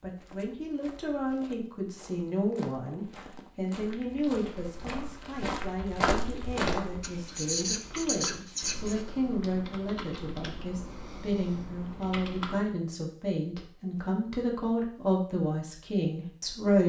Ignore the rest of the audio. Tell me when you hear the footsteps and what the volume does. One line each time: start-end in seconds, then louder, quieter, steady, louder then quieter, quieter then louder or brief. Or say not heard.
0.0-7.2 louder.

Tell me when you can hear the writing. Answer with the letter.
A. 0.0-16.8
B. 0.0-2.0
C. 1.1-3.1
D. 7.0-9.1
D.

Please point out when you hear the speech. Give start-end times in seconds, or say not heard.
0.0-16.8.